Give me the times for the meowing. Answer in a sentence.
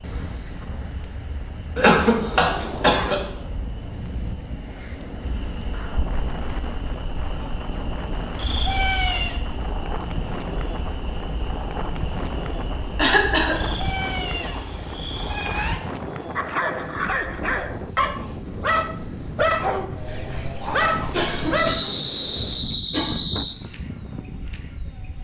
You can hear the meowing from 8.3 to 9.4 s and from 13.5 to 15.8 s.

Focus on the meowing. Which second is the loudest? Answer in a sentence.
The volume of the meowing peaks at 9 seconds.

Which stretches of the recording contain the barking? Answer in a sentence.
The barking can be heard from 16.4 to 21.9 s.